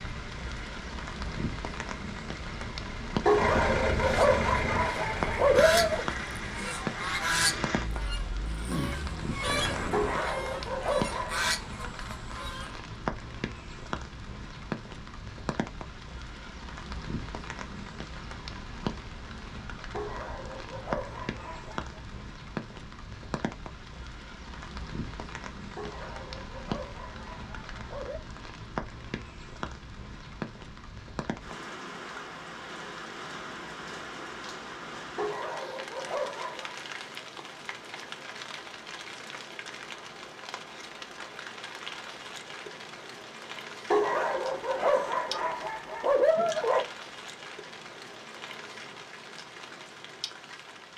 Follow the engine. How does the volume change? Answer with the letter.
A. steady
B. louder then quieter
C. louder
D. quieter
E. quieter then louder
B.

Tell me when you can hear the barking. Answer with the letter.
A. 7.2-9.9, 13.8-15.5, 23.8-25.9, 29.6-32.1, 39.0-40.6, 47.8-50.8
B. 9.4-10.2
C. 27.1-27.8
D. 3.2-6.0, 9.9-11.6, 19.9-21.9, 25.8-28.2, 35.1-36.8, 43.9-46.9
D.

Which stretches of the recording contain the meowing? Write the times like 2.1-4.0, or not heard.
not heard.